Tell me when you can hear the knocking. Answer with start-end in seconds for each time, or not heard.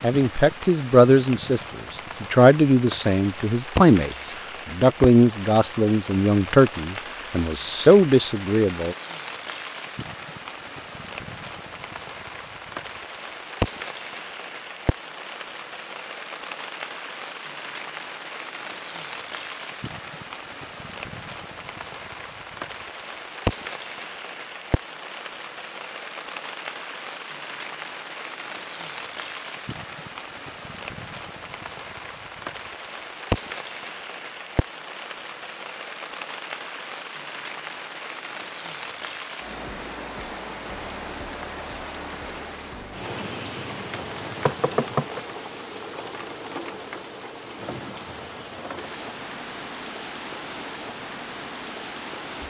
44.5-45.2.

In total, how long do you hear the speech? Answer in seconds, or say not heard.
9 s.